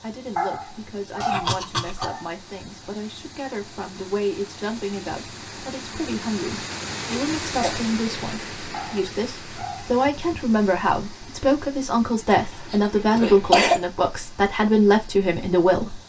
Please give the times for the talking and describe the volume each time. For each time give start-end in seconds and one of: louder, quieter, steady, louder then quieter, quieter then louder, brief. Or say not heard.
0.0-15.9 louder.